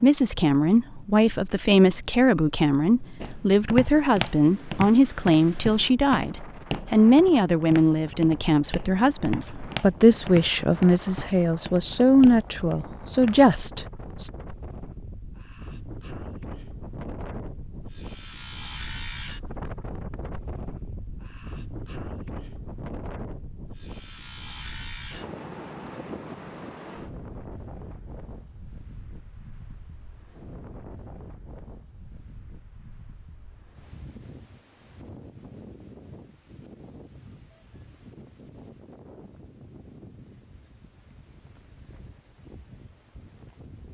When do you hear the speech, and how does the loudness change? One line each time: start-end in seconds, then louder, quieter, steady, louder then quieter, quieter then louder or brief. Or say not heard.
0.0-14.3 steady.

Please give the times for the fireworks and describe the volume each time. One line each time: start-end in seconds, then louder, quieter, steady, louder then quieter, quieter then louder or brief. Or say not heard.
not heard.